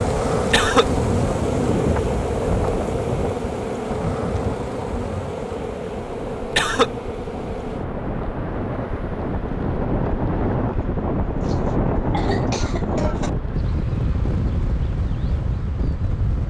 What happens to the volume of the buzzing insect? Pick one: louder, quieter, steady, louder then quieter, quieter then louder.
quieter.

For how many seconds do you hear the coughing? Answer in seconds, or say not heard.
3 s.